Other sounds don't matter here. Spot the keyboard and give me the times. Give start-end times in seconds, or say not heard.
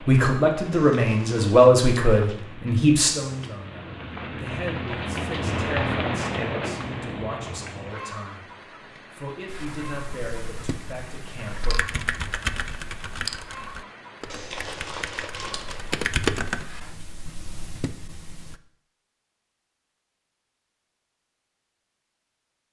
9.4-18.6.